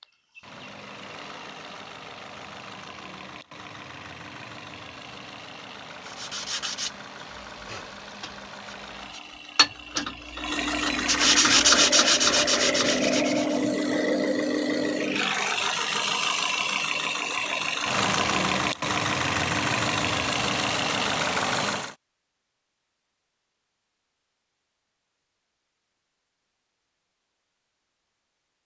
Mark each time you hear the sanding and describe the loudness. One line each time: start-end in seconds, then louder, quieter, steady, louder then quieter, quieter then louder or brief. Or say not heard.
6.0-13.7 quieter then louder.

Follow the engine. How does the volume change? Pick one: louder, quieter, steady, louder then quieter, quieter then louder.
louder.